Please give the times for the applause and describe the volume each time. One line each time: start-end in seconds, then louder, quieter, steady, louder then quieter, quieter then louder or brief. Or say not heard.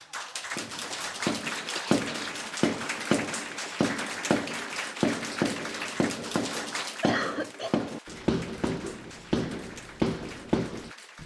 0.0-11.2 quieter.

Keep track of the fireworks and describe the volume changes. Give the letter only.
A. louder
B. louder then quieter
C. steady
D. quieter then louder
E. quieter
C.